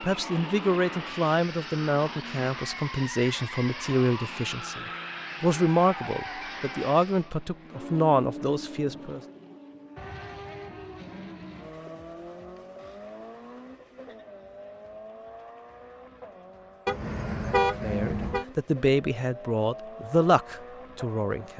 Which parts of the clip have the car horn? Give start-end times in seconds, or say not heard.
16.9-18.4.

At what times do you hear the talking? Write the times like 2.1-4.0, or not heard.
0.0-9.2, 17.8-21.5.